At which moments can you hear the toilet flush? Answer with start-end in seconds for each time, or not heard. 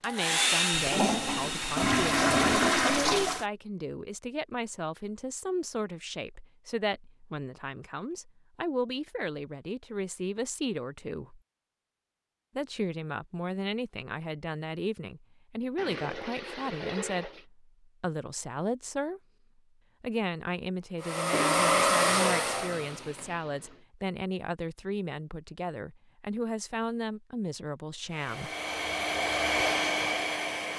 0.7-3.5, 15.8-17.4, 21.3-23.8.